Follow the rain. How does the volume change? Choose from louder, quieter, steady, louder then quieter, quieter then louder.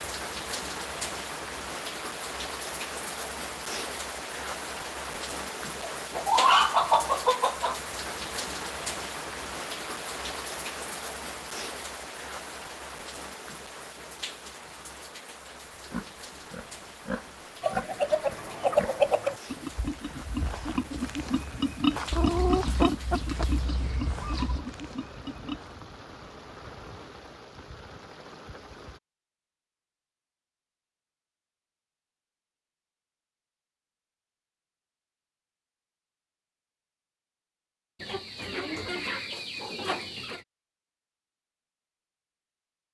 quieter.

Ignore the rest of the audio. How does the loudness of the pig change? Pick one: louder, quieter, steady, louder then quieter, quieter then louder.
louder then quieter.